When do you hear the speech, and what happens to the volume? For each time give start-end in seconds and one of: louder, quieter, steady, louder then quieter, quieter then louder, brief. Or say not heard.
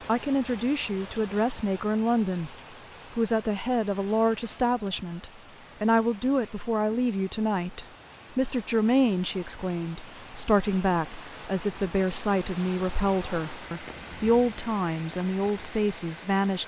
0.1-2.5 brief
3.1-16.6 steady.